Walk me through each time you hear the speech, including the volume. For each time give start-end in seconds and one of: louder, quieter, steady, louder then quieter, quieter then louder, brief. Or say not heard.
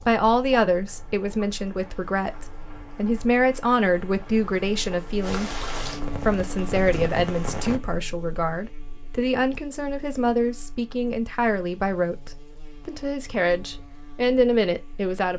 0.1-15.3 steady.